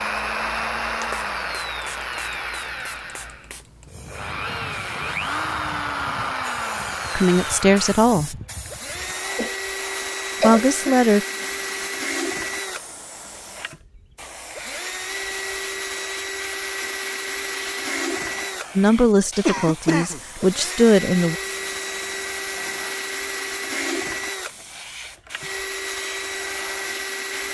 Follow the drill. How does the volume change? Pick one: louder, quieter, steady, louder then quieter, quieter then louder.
steady.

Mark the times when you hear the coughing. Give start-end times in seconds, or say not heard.
9.3-10.9, 19.4-20.2.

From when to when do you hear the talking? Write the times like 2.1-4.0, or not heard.
7.2-8.3, 10.4-11.2, 18.8-21.4.